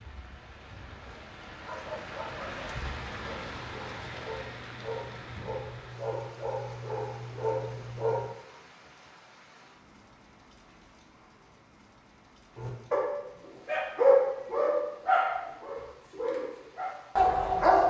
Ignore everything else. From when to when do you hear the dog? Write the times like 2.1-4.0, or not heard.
1.0-8.2, 12.6-17.8.